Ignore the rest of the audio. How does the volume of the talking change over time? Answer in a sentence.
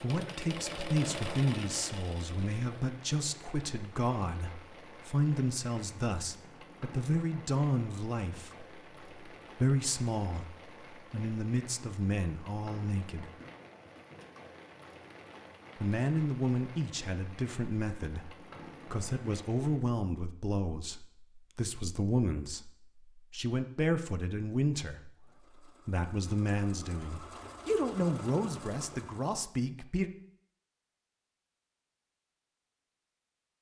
The loudness of the talking stays about the same.